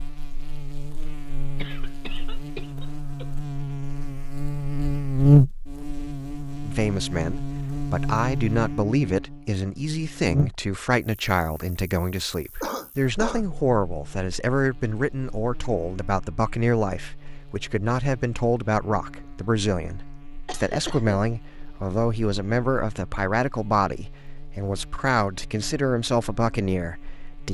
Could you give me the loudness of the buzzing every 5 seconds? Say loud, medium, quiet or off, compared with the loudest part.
medium, loud, medium, quiet, quiet, quiet.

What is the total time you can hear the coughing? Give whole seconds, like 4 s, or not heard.
3 s.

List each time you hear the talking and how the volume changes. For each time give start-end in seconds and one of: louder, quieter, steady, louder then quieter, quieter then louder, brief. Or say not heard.
6.7-27.4 steady.